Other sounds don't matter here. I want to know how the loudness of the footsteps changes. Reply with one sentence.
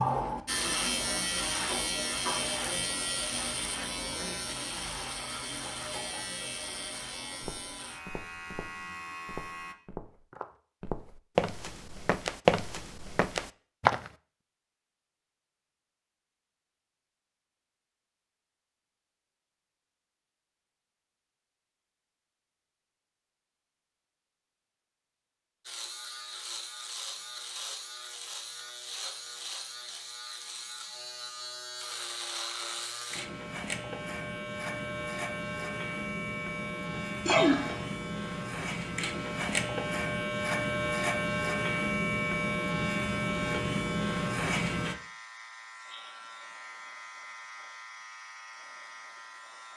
The loudness of the footsteps goes up, then down.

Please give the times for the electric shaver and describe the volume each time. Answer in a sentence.
You can hear the electric shaver from 0.0 to 9.8 s, getting quieter; and from 25.6 to 49.7 s, getting louder then quieter.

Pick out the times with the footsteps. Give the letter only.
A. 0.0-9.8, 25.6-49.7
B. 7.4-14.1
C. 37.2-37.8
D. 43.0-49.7
B.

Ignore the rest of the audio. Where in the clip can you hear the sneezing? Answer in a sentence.
The sneezing can be heard from 37.2 to 37.8 s.